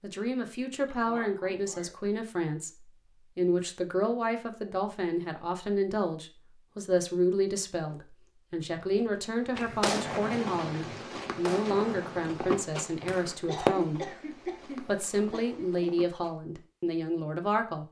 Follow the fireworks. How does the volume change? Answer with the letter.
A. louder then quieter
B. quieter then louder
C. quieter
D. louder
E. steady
C.